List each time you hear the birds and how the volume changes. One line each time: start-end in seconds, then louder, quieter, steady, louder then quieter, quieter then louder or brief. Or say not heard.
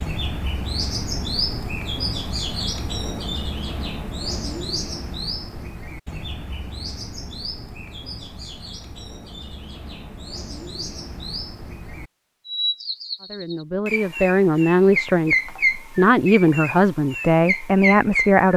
0.0-18.5 quieter then louder.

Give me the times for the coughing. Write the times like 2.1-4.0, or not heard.
not heard.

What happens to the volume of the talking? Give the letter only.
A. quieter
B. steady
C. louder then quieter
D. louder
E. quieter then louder
B.